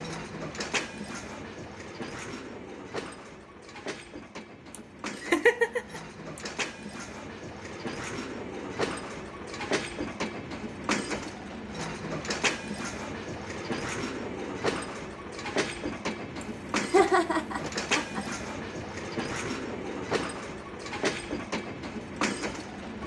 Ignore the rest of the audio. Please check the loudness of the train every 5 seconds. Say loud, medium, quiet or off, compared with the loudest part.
medium, loud, loud, loud, loud.